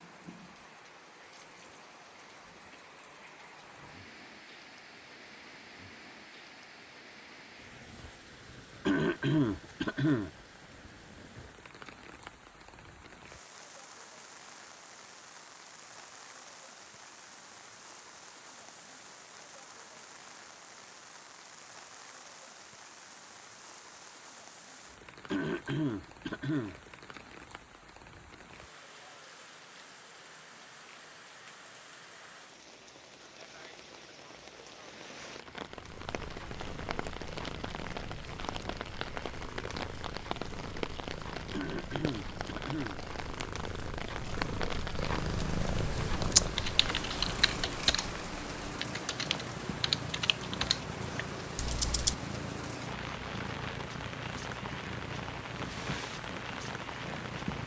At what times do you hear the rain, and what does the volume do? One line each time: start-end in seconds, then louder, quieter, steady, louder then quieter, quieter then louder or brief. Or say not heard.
0.0-57.6 louder.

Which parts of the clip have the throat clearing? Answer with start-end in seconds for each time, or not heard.
8.8-10.3, 25.3-26.8, 41.5-43.0.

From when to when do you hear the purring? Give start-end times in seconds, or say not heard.
35.6-57.6.